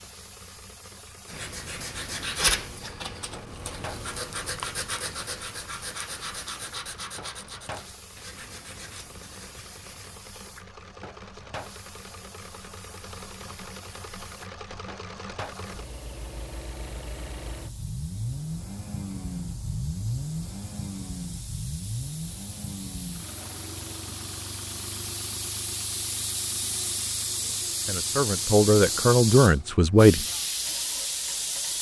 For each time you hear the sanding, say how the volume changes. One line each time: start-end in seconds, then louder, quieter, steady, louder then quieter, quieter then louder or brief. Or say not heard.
1.2-10.1 quieter.